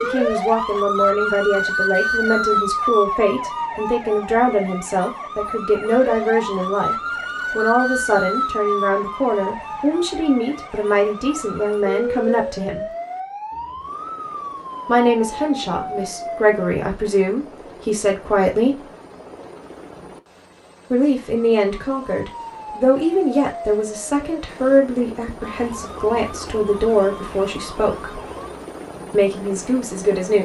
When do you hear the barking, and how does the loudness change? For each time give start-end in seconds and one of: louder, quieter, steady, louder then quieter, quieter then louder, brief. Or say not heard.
not heard.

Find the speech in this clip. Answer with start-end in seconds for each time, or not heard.
0.0-12.9, 14.8-18.9, 20.9-28.2, 29.1-30.4.